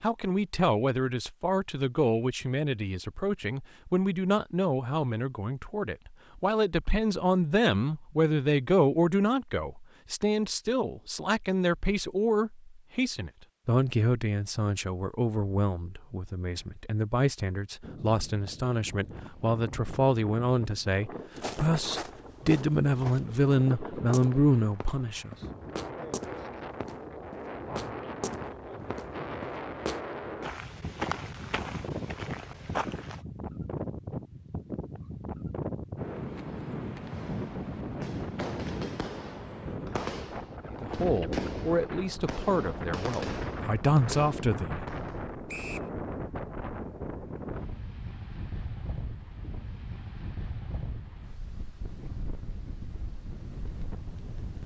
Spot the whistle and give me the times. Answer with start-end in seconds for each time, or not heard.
45.5-45.9.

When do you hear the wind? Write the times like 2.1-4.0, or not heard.
17.8-54.6.